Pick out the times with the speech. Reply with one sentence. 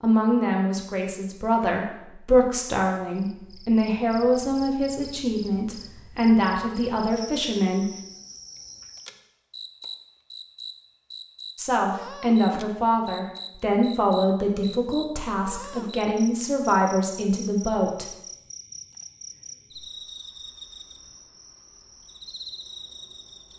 You can hear the speech from 0.0 to 7.8 s and from 11.6 to 18.1 s.